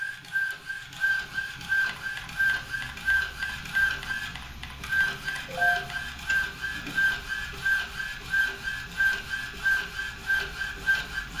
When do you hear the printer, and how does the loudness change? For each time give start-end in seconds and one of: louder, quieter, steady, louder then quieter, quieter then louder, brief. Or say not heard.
0.0-11.3 steady.